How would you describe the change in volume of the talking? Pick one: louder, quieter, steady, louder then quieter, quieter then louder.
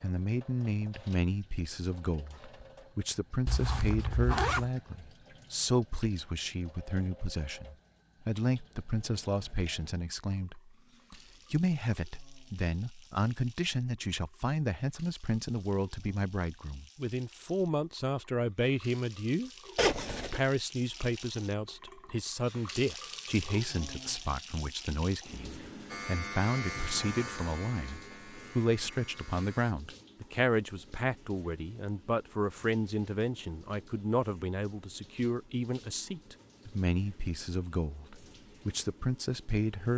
steady.